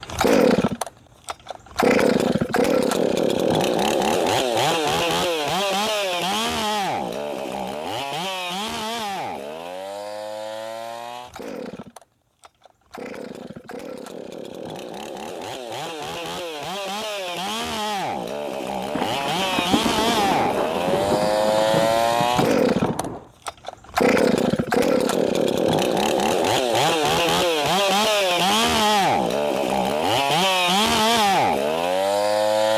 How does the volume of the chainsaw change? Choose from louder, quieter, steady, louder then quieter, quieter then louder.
quieter then louder.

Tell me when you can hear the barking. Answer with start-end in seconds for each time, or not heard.
not heard.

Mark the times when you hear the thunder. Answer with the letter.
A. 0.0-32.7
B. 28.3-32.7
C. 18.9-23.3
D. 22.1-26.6
C.